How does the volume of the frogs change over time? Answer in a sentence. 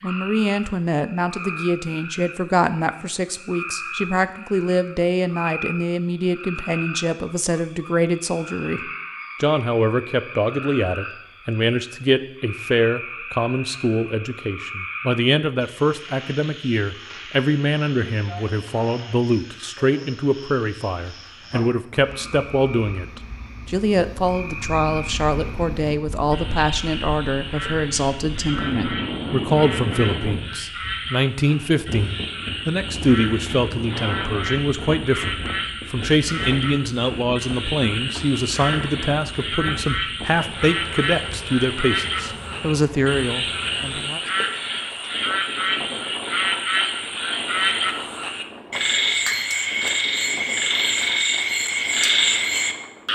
The volume of the frogs goes up.